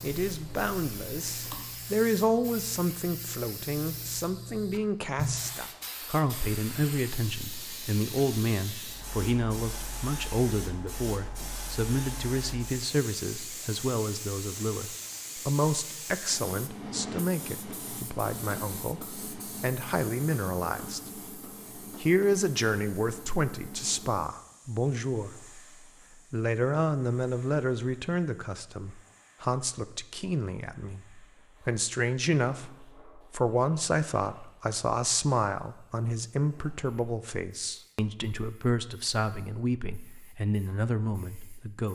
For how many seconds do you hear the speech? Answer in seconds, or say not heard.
41 s.